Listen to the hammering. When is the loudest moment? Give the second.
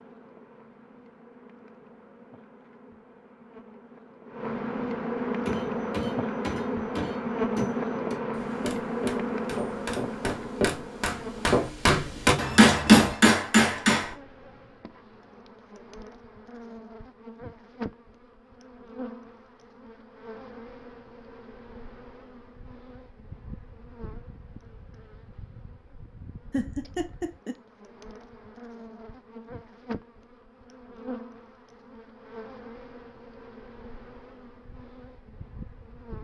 13 s.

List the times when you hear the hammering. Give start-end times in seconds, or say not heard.
5.5-14.2.